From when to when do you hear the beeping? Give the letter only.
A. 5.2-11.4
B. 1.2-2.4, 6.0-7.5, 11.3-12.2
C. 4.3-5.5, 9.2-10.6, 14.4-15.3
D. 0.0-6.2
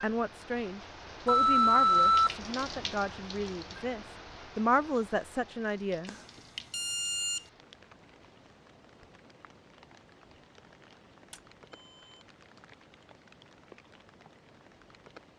B.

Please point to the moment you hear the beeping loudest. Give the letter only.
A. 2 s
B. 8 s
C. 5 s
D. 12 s
A.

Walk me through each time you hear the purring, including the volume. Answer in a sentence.
You can't hear the purring here.